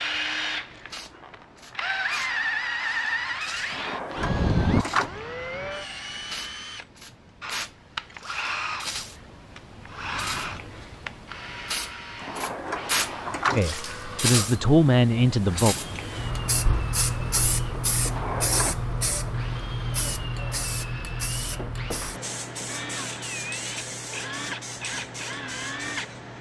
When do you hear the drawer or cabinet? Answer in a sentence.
You can hear the drawer or cabinet from 3.7 to 5.1 s, from 12.2 to 13.7 s and from 18.1 to 18.8 s.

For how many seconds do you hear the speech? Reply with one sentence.
The speech can be heard for 2 seconds in total.